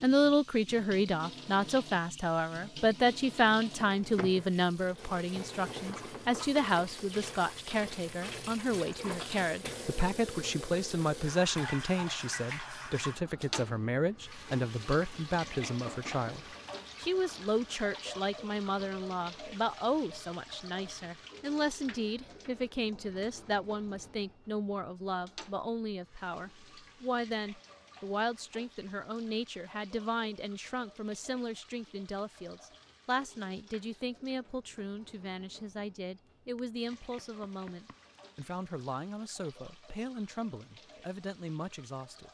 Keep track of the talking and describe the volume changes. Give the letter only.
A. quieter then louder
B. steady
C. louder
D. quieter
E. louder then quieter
D.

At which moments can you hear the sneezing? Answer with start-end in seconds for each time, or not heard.
not heard.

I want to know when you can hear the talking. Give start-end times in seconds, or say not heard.
0.0-42.2.